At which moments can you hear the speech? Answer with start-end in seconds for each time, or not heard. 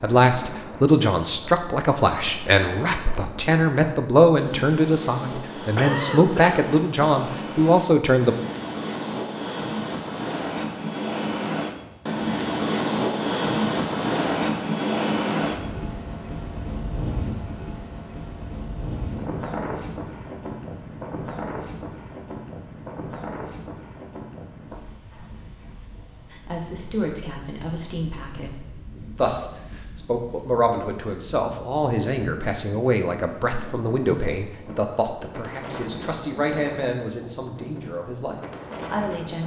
0.0-8.3, 26.3-39.4.